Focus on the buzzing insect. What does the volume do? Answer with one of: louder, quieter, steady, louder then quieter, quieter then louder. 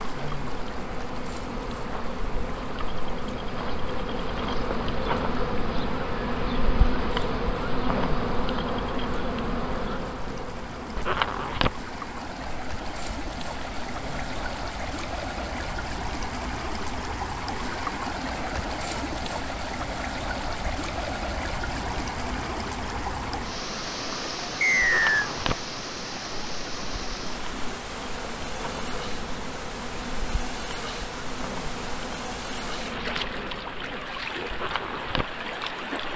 quieter then louder.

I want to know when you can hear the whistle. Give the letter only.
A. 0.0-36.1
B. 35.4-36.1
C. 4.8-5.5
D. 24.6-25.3
D.